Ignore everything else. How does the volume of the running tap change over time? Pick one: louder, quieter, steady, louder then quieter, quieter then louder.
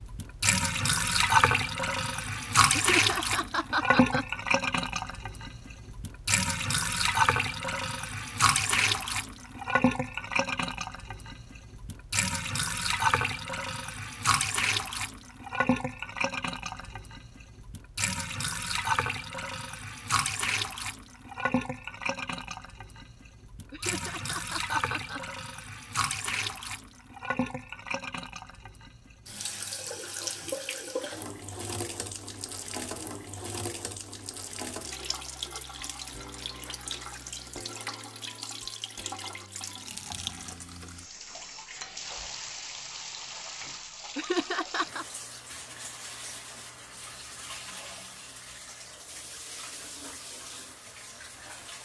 quieter.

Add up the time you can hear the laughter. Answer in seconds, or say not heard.
4 s.